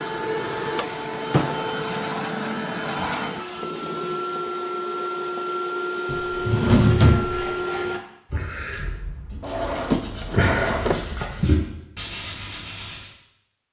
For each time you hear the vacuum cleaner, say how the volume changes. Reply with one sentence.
You can hear the vacuum cleaner from 0.0 to 8.0 s, at a steady volume.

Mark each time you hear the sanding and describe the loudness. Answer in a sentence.
You can hear the sanding from 7.0 to 13.2 s, getting louder then quieter.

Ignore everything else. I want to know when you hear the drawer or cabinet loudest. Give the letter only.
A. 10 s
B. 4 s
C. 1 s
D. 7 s
D.